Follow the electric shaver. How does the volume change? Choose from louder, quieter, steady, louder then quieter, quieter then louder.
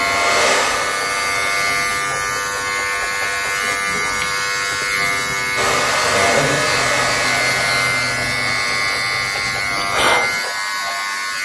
steady.